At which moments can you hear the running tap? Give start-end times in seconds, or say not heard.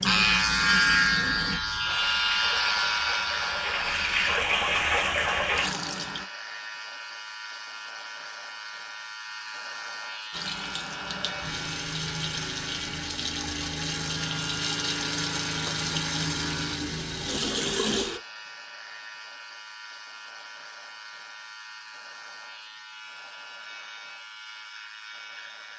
0.0-6.2, 10.3-18.2.